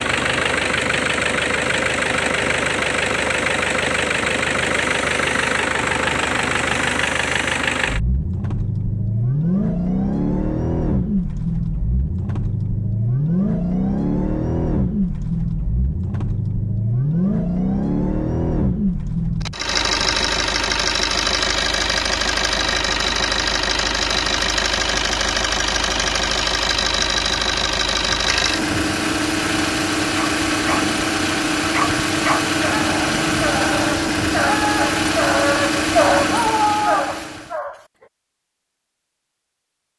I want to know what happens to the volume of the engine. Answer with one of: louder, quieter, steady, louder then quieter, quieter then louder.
steady.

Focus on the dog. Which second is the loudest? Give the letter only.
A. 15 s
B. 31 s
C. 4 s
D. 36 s
D.